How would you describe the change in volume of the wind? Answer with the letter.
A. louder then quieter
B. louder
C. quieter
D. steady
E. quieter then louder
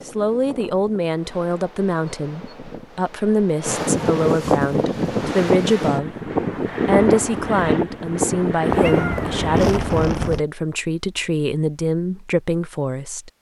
B.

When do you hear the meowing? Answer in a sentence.
The meowing can be heard from 8.7 to 10.1 s.